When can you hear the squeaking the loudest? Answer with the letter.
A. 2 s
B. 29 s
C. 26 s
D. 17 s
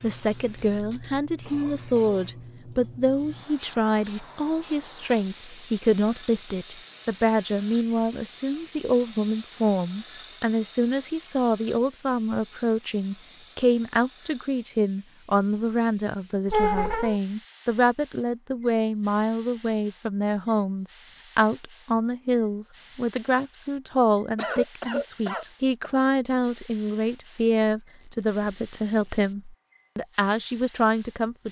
D.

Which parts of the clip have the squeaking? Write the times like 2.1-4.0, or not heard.
0.6-1.2, 16.5-17.1, 28.0-29.2.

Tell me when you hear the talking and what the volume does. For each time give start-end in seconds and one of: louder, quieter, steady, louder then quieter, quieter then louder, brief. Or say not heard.
0.0-31.4 steady.